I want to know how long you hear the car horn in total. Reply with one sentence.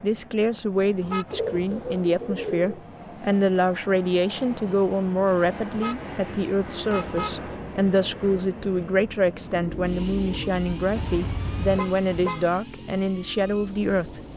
The car horn can be heard for 4 seconds in total.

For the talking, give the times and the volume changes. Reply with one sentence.
The talking can be heard from 0.0 to 14.3 s, at a steady volume.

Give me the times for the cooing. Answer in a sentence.
You can hear the cooing from 1.3 to 2.8 s.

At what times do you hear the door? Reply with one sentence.
The door can't be heard in this clip.